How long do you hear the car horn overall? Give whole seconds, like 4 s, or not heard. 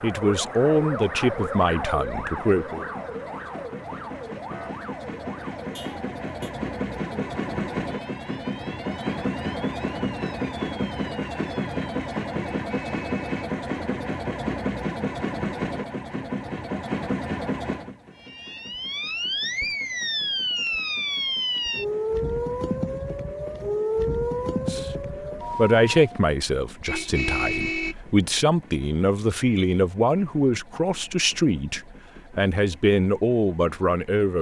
3 s.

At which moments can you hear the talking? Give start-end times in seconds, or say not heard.
0.0-2.9, 24.6-34.3.